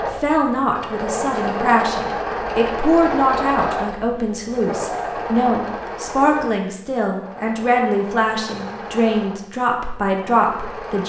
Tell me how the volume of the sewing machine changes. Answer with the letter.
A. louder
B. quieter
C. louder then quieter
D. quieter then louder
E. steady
B.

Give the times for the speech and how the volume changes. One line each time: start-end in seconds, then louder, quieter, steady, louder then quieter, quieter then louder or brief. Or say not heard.
0.0-11.0 steady.